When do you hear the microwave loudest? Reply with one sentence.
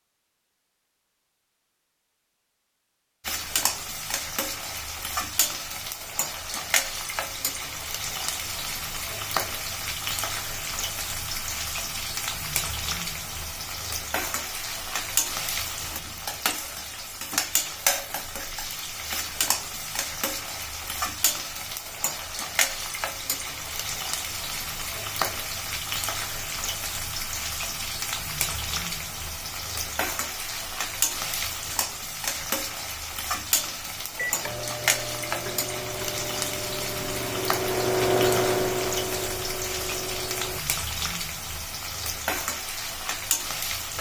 The volume of the microwave peaks at 38 seconds.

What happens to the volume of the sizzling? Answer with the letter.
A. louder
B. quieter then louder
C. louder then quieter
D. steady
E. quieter
D.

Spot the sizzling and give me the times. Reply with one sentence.
The sizzling can be heard from 3.2 to 43.9 s.